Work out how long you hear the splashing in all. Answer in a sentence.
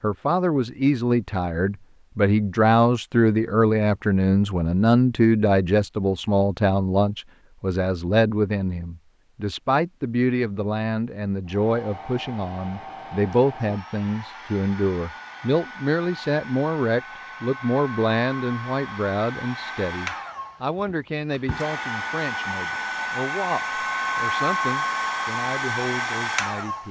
You can't hear the splashing here.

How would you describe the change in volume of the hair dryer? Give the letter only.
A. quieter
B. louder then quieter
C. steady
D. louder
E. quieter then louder
D.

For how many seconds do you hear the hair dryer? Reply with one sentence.
The hair dryer can be heard for 15 seconds in total.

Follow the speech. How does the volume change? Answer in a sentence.
The volume of the speech goes down.